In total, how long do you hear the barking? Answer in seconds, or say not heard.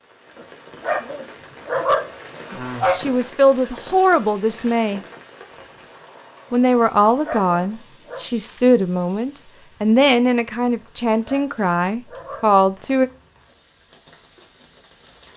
6 s.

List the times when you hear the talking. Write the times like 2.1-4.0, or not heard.
2.5-5.0, 6.5-13.1.